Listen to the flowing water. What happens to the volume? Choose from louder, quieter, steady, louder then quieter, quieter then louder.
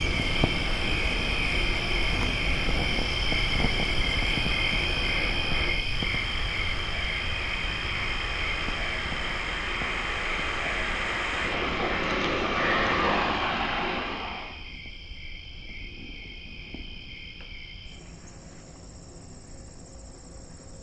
louder.